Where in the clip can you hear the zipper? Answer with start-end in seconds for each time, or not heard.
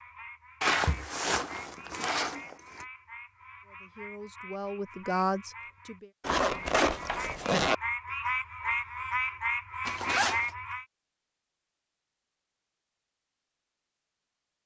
0.6-2.9, 6.2-7.8, 9.8-10.5.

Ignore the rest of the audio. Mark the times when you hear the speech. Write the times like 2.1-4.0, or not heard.
3.6-6.1.